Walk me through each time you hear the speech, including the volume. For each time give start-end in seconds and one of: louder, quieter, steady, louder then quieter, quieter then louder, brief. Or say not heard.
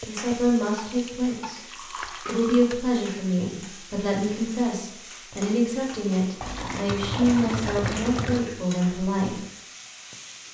0.1-9.4 steady.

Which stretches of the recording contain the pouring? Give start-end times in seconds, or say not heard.
0.8-2.6, 6.4-8.4.